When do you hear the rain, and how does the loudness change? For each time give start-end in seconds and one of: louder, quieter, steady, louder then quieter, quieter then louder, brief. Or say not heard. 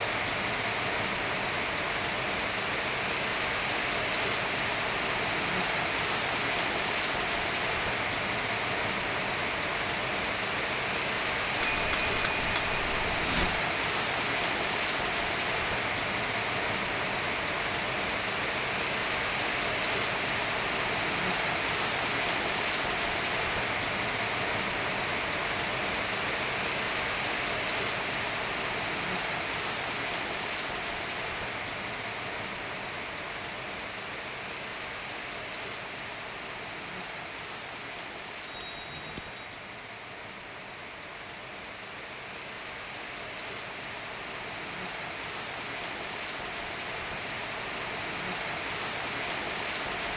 0.0-50.1 quieter.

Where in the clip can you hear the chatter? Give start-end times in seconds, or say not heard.
not heard.